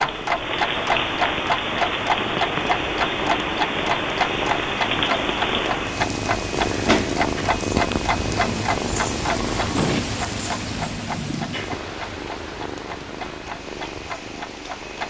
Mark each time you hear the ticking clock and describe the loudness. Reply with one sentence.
You can hear the ticking clock from 0.0 to 15.0 s, getting quieter.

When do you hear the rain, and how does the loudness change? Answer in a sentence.
You can hear the rain from 0.0 to 15.0 s, getting quieter.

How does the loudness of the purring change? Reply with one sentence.
The loudness of the purring goes up, then down.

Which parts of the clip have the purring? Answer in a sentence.
The purring can be heard from 0.2 to 15.0 s.